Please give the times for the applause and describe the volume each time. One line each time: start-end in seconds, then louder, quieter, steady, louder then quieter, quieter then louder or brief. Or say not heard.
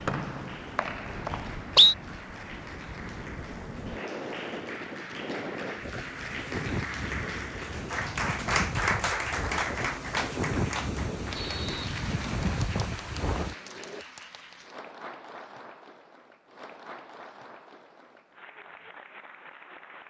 0.0-20.0 louder then quieter.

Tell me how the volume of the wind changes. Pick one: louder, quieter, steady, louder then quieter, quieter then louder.
louder.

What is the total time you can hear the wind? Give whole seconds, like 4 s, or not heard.
14 s.